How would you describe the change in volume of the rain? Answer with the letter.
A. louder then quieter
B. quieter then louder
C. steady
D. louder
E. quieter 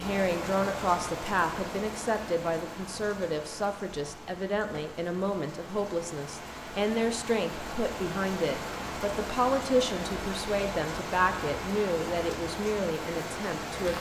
B.